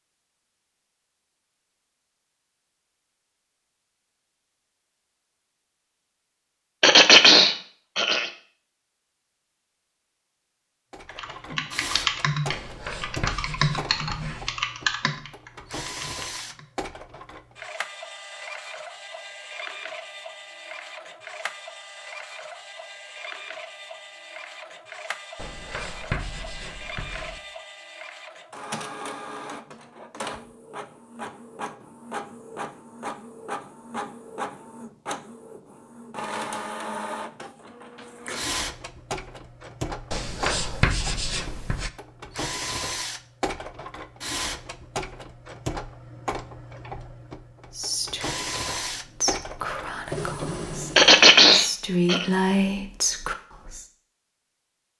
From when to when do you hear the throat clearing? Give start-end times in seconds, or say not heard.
6.8-8.3, 51.0-52.2.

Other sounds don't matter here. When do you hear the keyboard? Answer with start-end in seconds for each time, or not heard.
11.1-16.6.